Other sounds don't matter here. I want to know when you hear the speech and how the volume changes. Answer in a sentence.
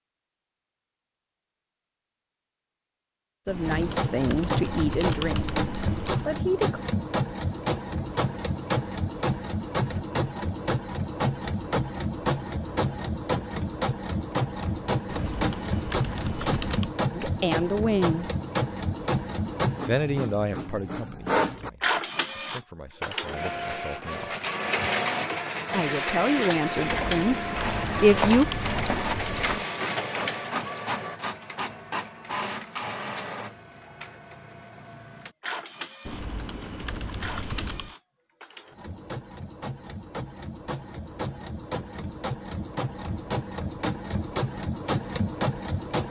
You can hear the speech briefly from 3.5 to 5.5 s; briefly from 6.2 to 6.8 s; briefly from 17.1 to 18.2 s; from 19.9 to 24.3 s, getting quieter then louder; and briefly from 25.7 to 28.4 s.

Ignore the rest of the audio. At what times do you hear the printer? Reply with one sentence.
You can hear the printer from 3.6 to 46.0 s.